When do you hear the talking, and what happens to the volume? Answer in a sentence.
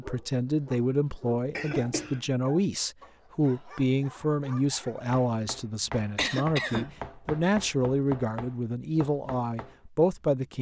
The talking can be heard from 0.0 to 10.5 s, at a steady volume.